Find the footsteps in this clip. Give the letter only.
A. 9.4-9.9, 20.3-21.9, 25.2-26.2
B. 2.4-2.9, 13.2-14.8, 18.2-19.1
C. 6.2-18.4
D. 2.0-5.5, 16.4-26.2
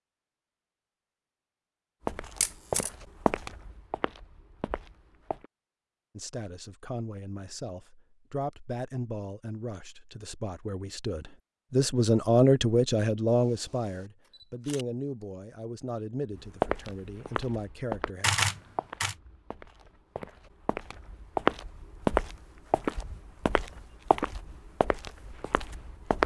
D.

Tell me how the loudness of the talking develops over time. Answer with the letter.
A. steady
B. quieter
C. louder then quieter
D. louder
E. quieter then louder
C.